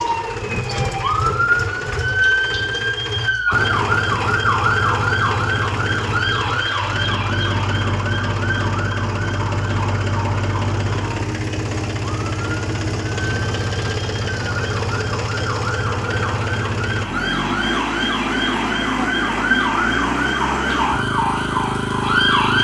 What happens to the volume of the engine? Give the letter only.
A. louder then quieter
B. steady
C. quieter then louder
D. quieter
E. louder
B.